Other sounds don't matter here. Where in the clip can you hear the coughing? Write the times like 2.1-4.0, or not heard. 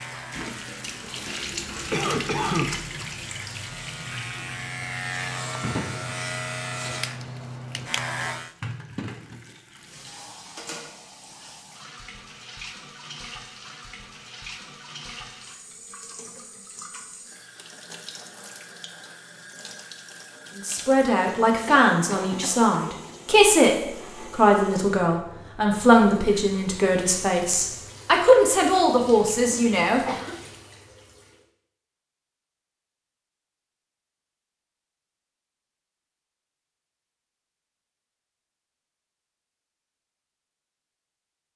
1.9-2.7, 21.6-23.6, 29.5-30.4.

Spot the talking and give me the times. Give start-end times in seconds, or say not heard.
20.6-30.1.